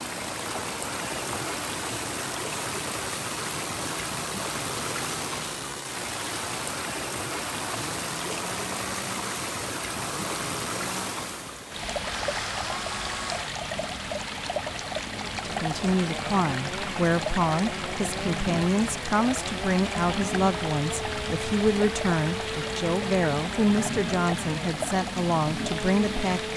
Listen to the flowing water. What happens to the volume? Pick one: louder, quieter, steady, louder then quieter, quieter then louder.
steady.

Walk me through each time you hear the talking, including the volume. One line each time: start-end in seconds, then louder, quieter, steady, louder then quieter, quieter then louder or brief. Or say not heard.
15.2-26.5 steady.